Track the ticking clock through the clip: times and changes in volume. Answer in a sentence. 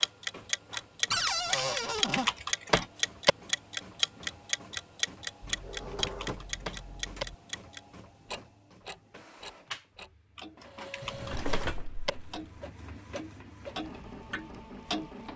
You can hear the ticking clock from 0.0 to 11.6 s, getting quieter; and briefly from 12.3 to 15.1 s.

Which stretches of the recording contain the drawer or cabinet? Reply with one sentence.
The drawer or cabinet can be heard from 1.1 to 2.3 s, from 5.4 to 7.3 s and from 11.0 to 12.4 s.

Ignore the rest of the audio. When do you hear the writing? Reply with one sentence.
You can't hear the writing here.